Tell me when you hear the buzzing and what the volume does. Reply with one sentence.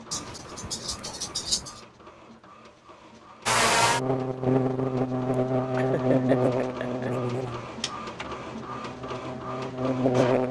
The buzzing can be heard from 3.5 to 10.4 s, getting quieter then louder.